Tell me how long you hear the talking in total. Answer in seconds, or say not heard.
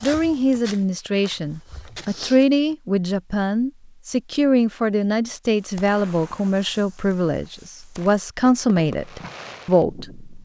10 s.